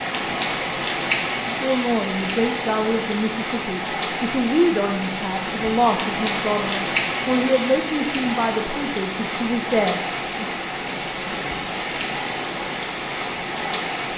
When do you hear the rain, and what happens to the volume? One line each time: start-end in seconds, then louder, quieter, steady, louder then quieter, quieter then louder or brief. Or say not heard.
0.0-14.1 steady.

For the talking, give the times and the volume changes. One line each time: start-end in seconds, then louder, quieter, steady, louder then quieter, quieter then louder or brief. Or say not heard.
1.4-10.4 steady.